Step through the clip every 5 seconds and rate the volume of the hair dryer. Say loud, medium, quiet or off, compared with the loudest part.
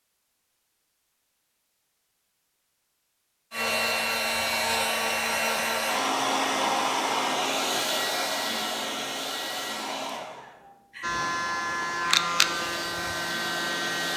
loud, loud, medium.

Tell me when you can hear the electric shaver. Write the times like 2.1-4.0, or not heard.
11.0-14.1.